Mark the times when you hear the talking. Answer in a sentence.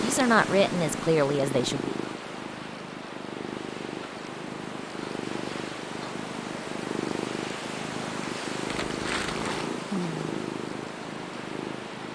The talking can be heard from 0.0 to 1.9 s.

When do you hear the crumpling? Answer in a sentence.
You can hear the crumpling from 8.7 to 9.7 s.